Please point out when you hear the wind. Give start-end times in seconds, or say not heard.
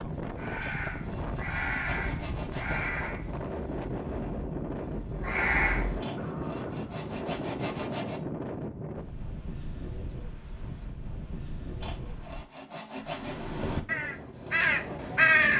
0.0-12.5.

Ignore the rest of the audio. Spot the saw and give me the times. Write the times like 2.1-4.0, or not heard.
0.6-2.9, 6.0-8.2, 11.8-13.4.